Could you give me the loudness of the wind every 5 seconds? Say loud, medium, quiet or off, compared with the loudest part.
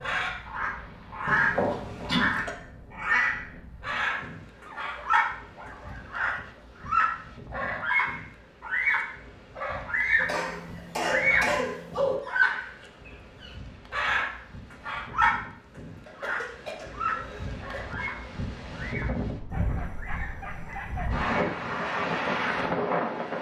quiet, quiet, quiet, medium, loud.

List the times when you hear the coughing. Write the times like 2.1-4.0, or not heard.
1.2-2.5, 10.2-12.2, 16.1-17.9.